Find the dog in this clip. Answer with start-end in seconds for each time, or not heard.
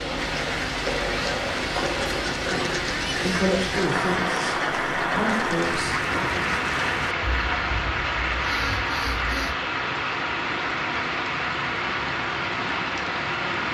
not heard.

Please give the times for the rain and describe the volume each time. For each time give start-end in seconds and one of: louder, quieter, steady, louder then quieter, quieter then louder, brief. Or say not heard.
0.0-13.6 steady.